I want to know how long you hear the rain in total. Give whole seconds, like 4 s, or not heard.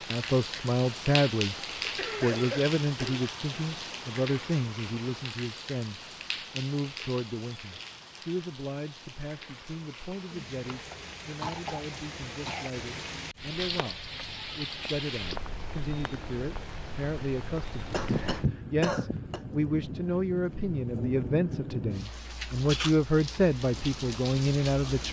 25 s.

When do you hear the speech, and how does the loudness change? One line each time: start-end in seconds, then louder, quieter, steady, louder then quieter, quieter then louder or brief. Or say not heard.
0.1-1.6 brief
2.2-25.0 quieter then louder.